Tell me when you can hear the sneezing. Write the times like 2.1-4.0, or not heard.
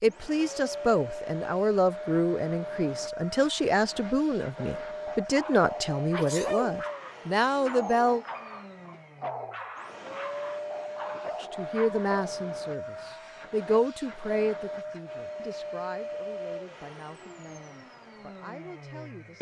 6.1-6.8.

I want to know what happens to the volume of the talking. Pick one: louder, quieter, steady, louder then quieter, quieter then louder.
quieter.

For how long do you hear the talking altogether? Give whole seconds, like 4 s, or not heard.
16 s.